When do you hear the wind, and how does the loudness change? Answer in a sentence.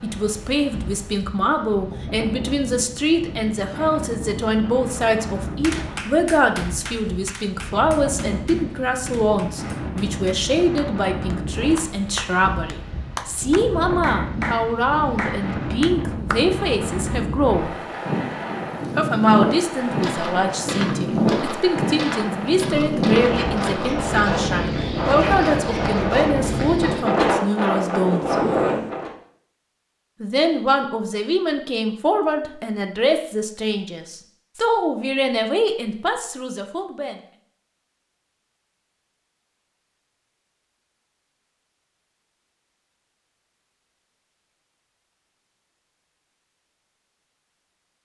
You can hear the wind from 0.0 to 29.1 s, getting louder.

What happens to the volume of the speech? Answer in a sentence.
The volume of the speech stays about the same.